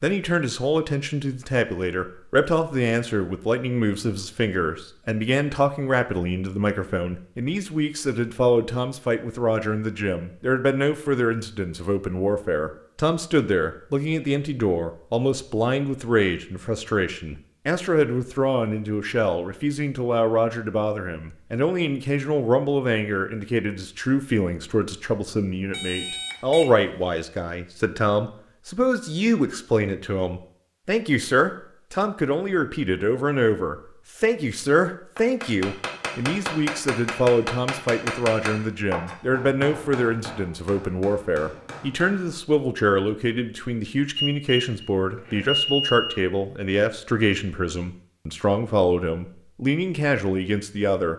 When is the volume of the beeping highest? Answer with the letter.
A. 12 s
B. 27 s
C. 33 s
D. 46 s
D.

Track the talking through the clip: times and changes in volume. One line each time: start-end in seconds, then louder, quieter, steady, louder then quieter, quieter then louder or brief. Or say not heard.
0.0-51.1 steady.